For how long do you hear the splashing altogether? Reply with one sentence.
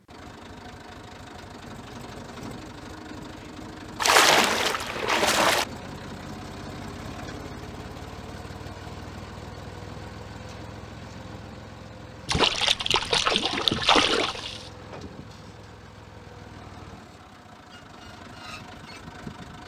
The splashing can be heard for 4 seconds in total.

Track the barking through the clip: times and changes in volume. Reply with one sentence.
The barking can't be heard in this clip.